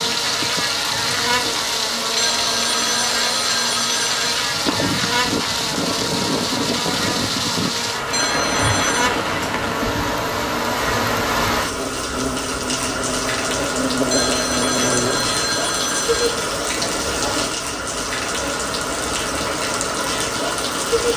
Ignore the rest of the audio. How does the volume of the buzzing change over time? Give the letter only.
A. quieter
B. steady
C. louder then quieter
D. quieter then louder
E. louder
B.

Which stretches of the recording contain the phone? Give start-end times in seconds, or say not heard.
2.1-4.2, 8.1-9.1, 14.1-16.4.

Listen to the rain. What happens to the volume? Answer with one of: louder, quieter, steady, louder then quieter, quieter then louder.
steady.